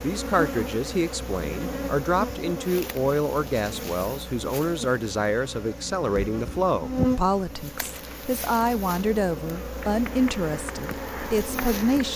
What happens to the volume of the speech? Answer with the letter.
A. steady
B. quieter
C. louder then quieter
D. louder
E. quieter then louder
A.